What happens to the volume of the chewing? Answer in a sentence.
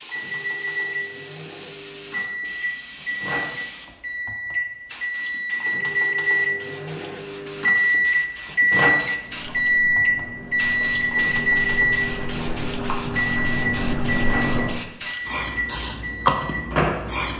The loudness of the chewing goes up.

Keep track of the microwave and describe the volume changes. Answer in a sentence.
The loudness of the microwave goes up, then down.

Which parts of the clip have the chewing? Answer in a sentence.
You can hear the chewing from 9.2 to 14.8 s.